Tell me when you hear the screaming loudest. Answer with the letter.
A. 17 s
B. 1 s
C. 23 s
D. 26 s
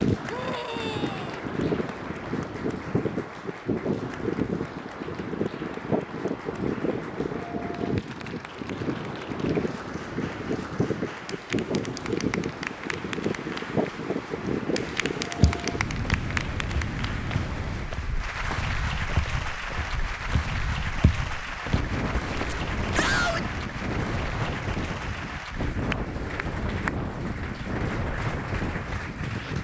C.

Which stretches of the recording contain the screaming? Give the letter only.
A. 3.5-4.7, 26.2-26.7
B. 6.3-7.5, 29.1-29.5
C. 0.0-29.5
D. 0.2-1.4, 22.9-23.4
D.